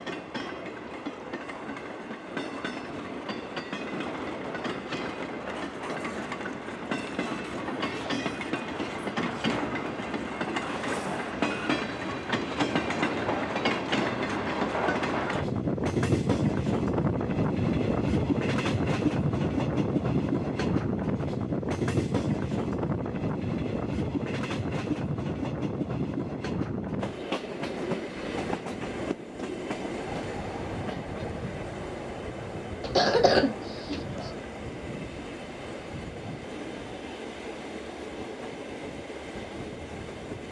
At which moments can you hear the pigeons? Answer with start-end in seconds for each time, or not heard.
not heard.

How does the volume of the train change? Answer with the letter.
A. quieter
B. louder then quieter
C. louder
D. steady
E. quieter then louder
B.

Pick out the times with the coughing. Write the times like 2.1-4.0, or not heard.
32.8-34.3.